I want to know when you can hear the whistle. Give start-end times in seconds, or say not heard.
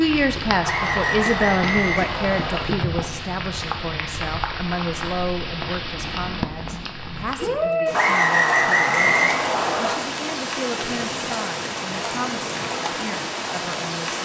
0.6-2.6, 7.9-9.9.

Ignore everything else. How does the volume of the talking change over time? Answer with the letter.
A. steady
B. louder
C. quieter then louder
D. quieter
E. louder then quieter
D.